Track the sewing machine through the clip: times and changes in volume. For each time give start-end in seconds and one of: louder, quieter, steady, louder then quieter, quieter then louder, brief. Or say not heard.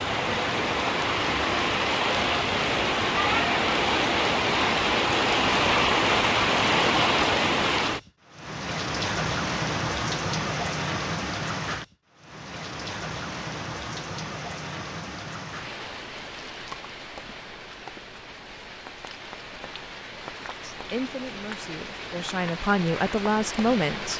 not heard.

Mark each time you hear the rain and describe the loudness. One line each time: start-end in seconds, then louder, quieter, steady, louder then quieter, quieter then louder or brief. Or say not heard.
0.0-24.1 quieter.